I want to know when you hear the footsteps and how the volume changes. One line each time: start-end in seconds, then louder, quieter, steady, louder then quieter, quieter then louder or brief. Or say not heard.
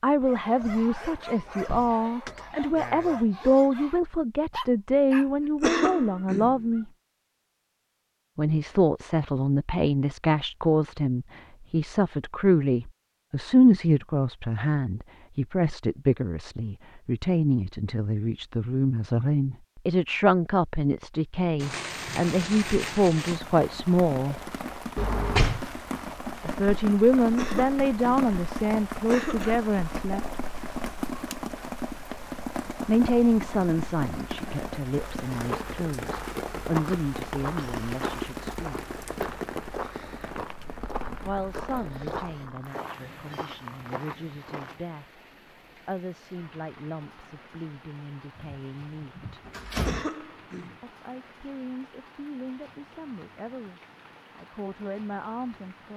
35.3-44.8 steady.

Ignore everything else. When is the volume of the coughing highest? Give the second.
6 s.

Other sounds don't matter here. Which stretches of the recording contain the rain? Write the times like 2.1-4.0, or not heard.
21.6-55.9.